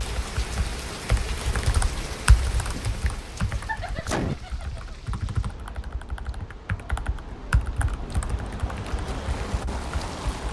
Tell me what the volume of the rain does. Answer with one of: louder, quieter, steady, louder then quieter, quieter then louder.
quieter then louder.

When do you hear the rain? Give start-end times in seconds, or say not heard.
0.0-10.4.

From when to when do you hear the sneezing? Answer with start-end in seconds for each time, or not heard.
4.0-4.4.